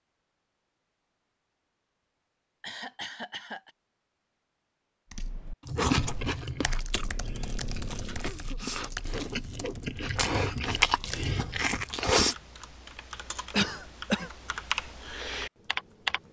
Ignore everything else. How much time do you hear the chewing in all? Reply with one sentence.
The chewing can be heard for 7 seconds in total.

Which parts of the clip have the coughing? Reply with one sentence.
You can hear the coughing from 2.6 to 3.7 s, from 6.9 to 8.8 s and from 13.5 to 14.3 s.